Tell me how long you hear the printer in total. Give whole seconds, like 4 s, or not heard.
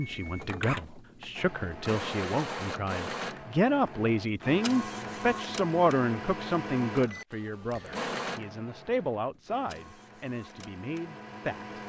12 s.